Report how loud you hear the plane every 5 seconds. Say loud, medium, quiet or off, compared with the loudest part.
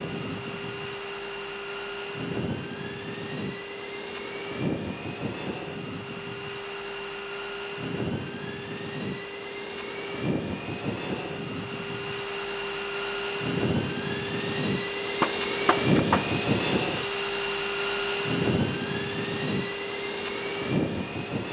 medium, medium, loud, loud, loud.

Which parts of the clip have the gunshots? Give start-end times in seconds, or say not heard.
15.2-16.4.